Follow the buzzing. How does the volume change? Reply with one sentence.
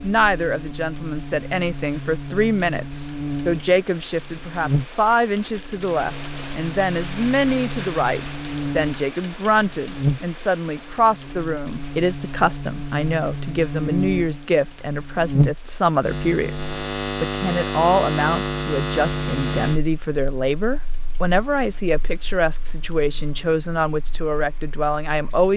The loudness of the buzzing goes up, then down.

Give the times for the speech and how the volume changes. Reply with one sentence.
The speech can be heard from 0.0 to 25.5 s, at a steady volume.